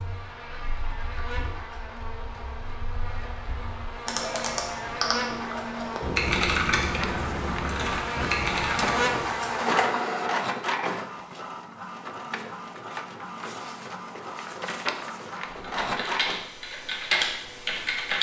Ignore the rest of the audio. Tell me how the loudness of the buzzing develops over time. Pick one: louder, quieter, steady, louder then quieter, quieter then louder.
louder.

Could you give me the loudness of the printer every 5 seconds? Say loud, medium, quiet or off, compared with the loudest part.
off, loud, loud, loud.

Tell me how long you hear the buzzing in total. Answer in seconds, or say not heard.
10 s.